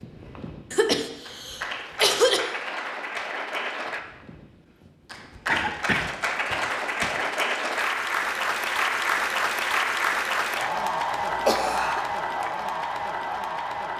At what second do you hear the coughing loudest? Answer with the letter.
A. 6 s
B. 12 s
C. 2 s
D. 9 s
C.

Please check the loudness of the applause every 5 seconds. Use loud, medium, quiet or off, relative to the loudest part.
medium, loud, loud.